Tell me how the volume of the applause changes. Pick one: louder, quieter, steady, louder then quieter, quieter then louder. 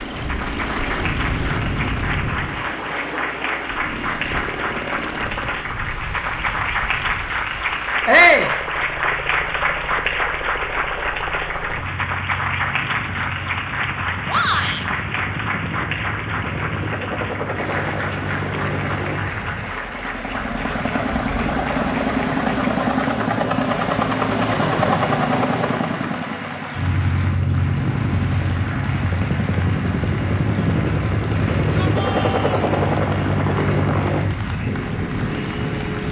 quieter.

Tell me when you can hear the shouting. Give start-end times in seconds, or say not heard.
8.1-8.5, 14.2-14.8, 31.6-32.6.